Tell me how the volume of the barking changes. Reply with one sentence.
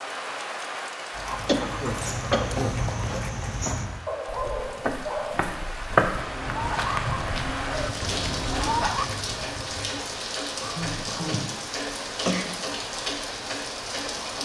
The volume of the barking stays about the same.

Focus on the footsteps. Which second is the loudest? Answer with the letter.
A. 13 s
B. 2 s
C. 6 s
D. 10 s
C.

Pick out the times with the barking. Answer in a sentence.
The barking can be heard from 1.1 to 9.1 s.